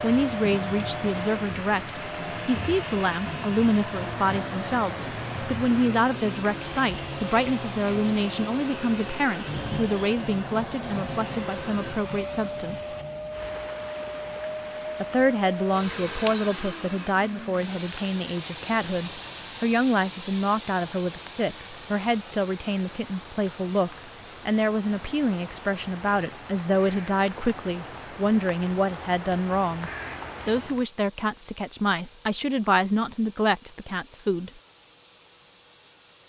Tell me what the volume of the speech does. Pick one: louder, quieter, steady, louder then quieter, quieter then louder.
steady.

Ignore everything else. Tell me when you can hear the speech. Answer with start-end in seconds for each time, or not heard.
0.0-12.9, 15.0-34.5.